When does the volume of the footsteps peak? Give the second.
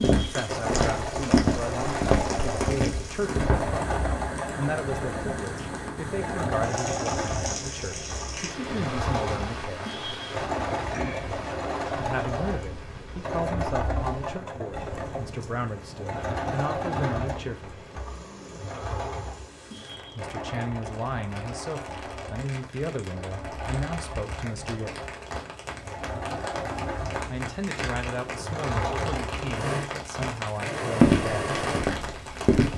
31 s.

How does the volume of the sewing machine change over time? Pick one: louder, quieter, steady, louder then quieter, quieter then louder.
quieter then louder.